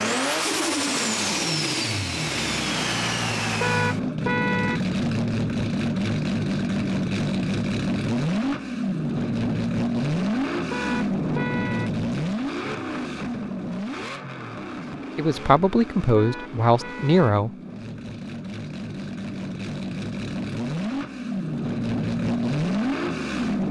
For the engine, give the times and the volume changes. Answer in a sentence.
The engine can be heard from 0.0 to 23.6 s, getting quieter then louder.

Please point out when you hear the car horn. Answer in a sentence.
The car horn can be heard from 3.6 to 4.8 s, from 10.7 to 11.9 s and from 16.1 to 17.4 s.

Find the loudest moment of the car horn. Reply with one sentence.
The volume of the car horn peaks at 4 seconds.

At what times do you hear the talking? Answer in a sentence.
The talking can be heard from 15.2 to 17.5 s.